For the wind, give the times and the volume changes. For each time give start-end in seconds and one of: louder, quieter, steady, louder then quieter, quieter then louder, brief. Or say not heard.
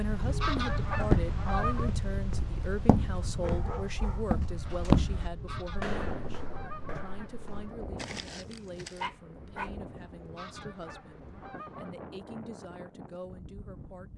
0.0-14.1 quieter.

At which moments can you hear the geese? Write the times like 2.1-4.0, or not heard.
0.1-1.9, 5.2-7.8, 10.2-11.9.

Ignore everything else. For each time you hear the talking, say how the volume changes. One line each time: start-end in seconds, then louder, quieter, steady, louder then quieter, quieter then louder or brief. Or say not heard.
0.0-14.1 quieter.